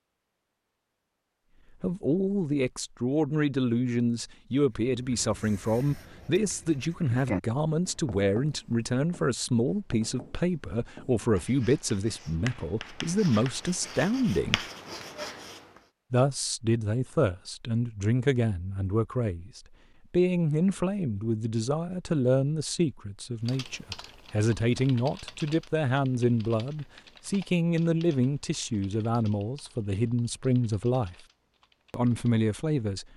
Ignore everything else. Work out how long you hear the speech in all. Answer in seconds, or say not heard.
29 s.